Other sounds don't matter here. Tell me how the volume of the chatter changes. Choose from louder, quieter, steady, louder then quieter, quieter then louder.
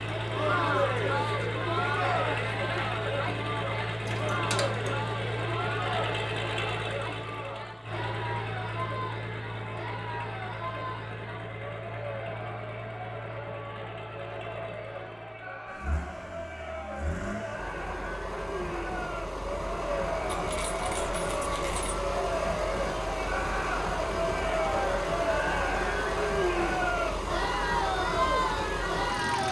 quieter then louder.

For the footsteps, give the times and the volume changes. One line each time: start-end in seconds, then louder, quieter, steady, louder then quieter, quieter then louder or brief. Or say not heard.
not heard.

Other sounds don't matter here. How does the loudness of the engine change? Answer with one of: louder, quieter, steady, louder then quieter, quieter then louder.
quieter then louder.